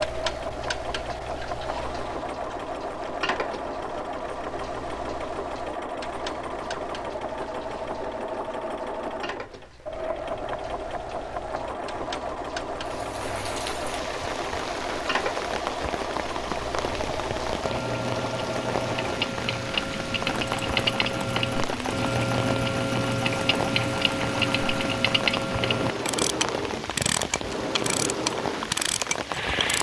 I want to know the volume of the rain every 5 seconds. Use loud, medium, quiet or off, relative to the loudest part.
off, off, loud, loud, loud, loud.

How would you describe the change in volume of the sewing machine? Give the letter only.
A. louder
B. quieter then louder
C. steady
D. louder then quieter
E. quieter
C.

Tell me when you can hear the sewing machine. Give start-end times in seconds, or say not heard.
0.0-29.7.